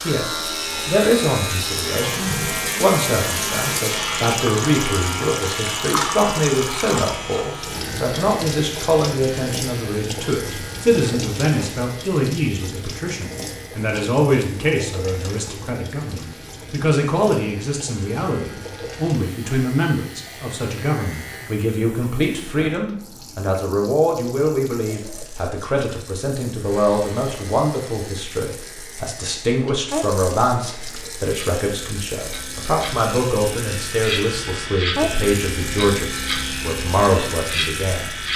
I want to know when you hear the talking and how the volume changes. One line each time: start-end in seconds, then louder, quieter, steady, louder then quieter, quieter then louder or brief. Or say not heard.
0.0-38.1 steady.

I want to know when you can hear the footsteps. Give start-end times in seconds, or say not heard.
not heard.